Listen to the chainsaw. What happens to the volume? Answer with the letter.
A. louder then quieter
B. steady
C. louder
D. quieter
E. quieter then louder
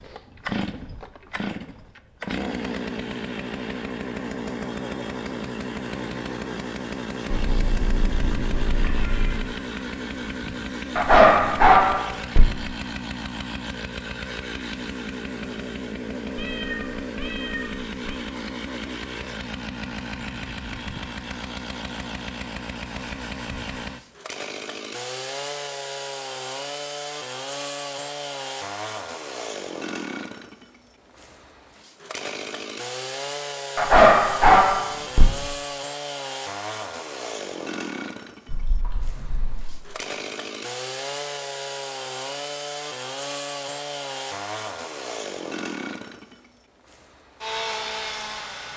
B.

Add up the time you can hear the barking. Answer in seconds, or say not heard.
3 s.